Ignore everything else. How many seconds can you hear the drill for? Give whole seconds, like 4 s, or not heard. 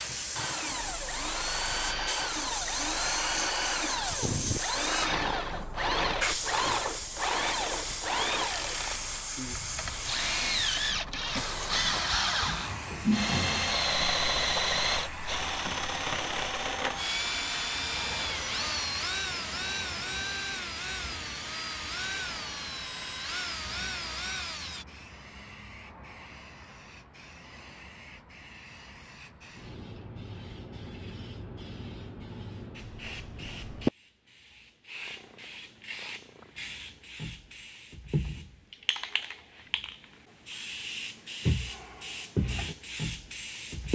25 s.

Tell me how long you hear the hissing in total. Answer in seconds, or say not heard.
44 s.